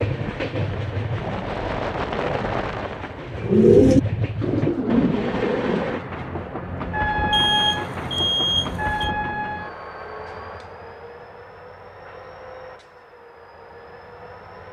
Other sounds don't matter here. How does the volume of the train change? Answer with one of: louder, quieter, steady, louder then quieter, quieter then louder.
quieter.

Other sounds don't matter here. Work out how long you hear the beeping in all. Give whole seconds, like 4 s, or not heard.
2 s.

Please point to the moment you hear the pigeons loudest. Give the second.
4 s.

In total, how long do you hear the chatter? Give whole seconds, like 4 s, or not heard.
not heard.